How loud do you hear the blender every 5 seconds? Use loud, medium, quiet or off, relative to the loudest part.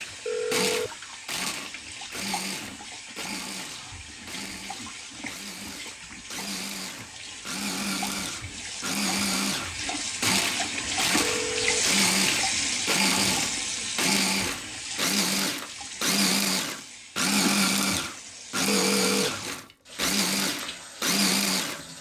medium, medium, loud, loud, loud.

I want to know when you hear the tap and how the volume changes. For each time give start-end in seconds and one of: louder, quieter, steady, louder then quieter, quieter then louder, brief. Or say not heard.
0.0-21.9 louder then quieter.